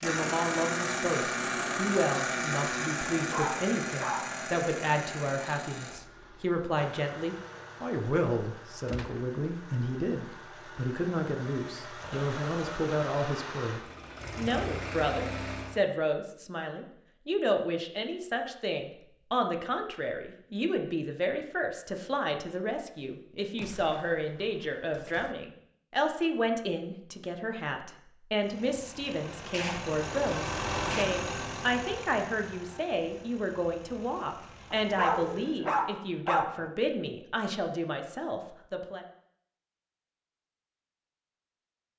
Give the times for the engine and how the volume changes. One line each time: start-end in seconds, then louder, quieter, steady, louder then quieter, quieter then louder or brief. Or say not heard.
0.0-15.8 quieter then louder
28.4-35.6 louder then quieter.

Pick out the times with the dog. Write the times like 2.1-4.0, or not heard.
3.2-4.2, 34.7-36.7.